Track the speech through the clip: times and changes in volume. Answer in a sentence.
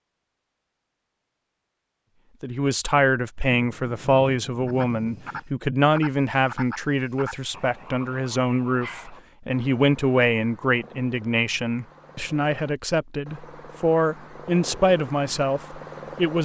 The speech can be heard from 2.4 to 16.3 s, at a steady volume.